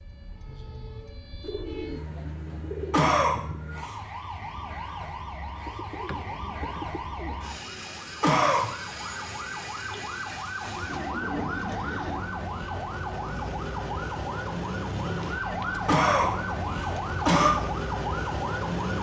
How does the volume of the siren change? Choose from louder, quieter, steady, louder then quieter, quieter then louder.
louder.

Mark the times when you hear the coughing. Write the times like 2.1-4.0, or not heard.
2.9-4.0, 8.2-9.2, 15.8-17.6.